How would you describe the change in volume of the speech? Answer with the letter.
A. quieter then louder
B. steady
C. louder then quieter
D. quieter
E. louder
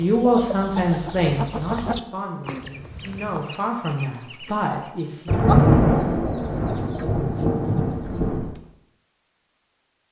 A.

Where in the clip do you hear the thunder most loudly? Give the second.
6 s.